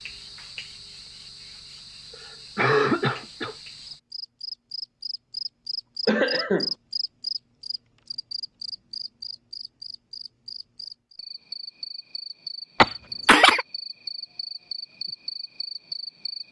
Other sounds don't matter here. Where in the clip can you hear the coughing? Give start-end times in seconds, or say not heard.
2.5-3.5, 6.0-6.7, 12.8-13.7.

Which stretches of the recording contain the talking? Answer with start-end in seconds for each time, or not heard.
not heard.